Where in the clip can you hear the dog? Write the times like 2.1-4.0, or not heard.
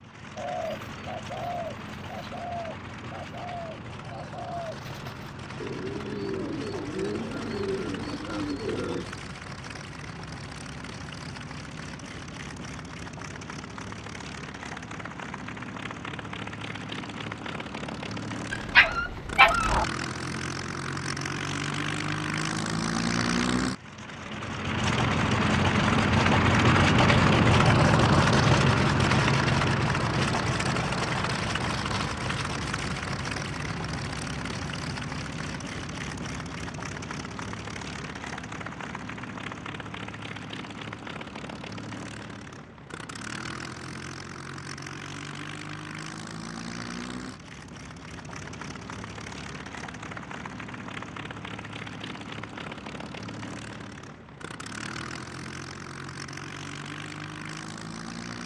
18.5-19.9.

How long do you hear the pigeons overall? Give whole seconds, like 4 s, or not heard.
9 s.